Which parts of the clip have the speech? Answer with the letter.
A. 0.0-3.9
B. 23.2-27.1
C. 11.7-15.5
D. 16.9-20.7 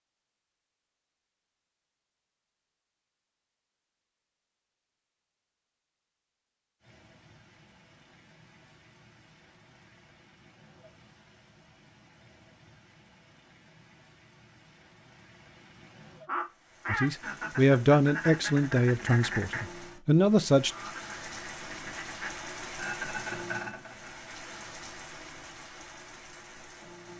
D.